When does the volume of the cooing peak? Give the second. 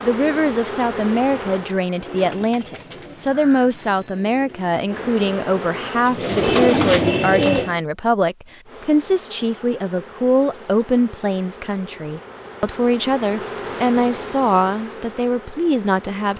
7 s.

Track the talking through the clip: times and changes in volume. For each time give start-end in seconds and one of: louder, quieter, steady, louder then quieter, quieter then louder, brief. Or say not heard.
0.0-16.3 steady.